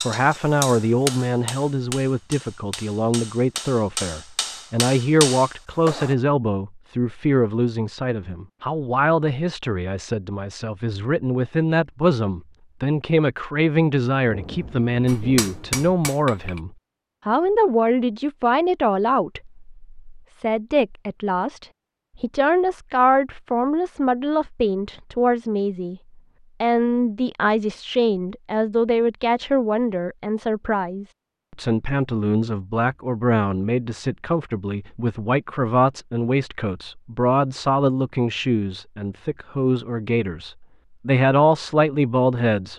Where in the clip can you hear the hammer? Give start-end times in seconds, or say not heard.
0.0-6.2, 15.1-16.6.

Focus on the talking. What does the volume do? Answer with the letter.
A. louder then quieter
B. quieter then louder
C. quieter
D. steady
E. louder
D.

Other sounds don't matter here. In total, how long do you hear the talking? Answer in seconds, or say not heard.
42 s.